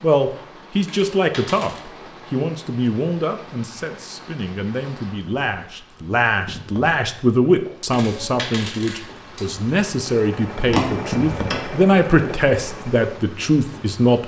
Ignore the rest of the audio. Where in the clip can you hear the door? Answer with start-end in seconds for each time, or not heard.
10.7-11.7.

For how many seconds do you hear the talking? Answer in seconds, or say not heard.
14 s.